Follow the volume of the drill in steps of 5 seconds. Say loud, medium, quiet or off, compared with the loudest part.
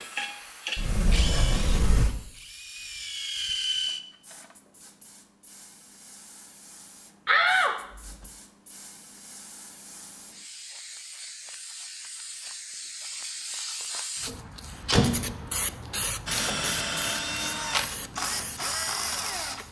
loud, off, off, loud.